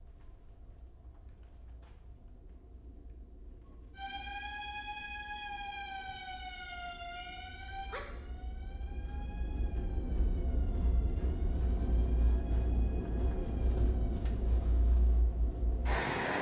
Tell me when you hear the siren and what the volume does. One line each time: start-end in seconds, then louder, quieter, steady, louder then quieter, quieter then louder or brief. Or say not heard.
4.0-14.3 quieter.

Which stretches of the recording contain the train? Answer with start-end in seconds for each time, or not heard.
0.0-16.3.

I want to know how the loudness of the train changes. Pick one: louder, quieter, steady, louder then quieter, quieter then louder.
louder.